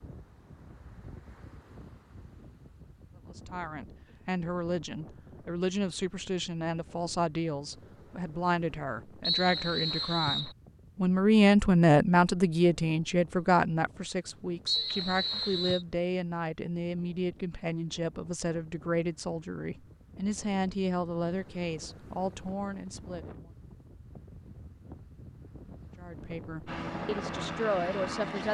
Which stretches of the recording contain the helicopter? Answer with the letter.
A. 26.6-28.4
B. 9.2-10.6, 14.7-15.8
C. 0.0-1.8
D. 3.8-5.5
A.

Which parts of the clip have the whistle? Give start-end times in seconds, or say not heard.
9.2-10.6, 14.7-15.8.